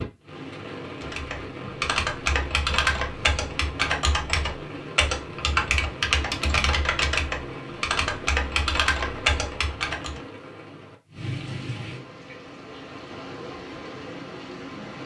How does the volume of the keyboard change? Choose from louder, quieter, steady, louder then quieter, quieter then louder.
steady.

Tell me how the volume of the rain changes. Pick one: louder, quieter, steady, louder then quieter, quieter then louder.
steady.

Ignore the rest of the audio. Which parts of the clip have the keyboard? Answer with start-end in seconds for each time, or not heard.
1.0-10.2.